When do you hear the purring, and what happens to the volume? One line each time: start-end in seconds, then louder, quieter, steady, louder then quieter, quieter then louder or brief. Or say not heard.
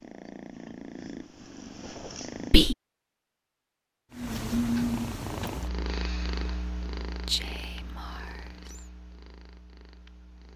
0.0-2.8 brief
4.1-10.5 quieter.